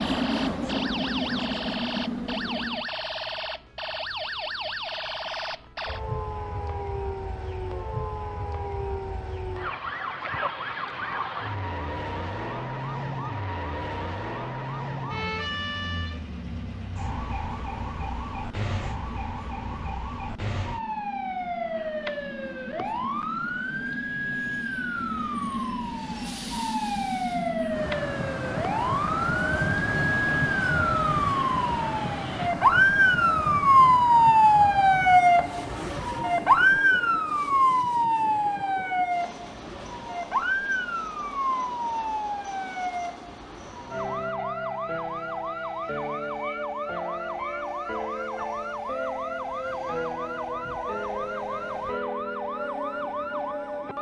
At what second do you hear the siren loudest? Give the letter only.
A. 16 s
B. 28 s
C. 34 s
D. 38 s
C.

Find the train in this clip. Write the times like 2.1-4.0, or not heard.
0.0-2.9, 15.3-53.9.